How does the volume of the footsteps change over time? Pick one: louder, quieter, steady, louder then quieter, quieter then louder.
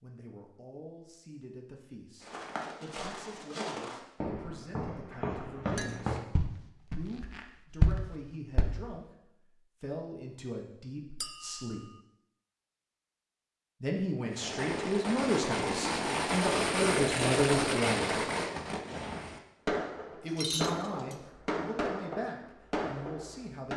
louder.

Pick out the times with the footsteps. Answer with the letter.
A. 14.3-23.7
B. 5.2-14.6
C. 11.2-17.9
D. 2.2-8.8
D.